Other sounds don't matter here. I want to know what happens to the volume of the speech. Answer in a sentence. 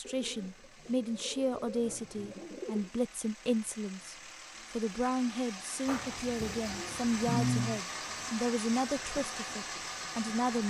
The loudness of the speech stays about the same.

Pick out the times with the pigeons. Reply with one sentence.
You can hear the pigeons from 0.0 to 2.9 s and from 5.8 to 7.8 s.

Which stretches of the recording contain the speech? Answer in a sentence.
You can hear the speech from 0.0 to 10.6 s.